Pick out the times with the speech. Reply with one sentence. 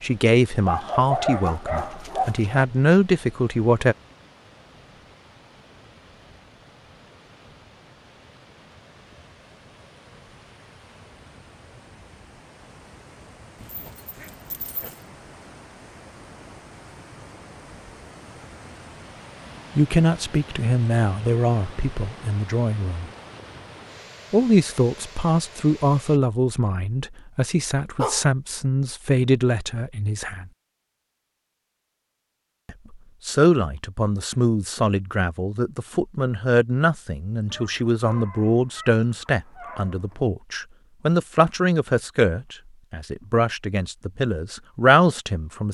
The speech can be heard from 0.0 to 4.0 s, from 19.8 to 23.1 s, from 24.3 to 30.4 s and from 32.6 to 45.6 s.